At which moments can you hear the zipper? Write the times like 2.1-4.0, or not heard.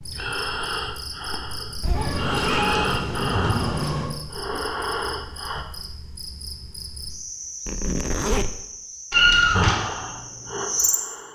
1.8-2.5, 7.7-8.6.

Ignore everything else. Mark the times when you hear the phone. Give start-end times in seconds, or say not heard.
not heard.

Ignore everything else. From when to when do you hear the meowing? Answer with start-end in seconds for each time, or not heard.
1.9-4.1, 9.1-9.8.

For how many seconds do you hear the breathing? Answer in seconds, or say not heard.
7 s.